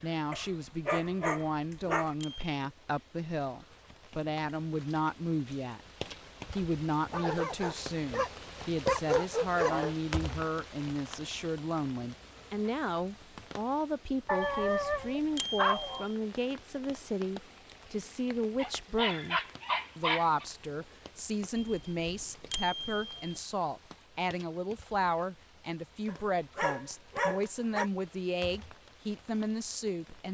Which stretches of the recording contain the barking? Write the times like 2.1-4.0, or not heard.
0.3-2.1, 7.0-9.9, 14.2-16.1, 18.6-20.4, 26.1-27.9.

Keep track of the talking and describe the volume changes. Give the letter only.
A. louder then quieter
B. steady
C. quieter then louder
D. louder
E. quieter
B.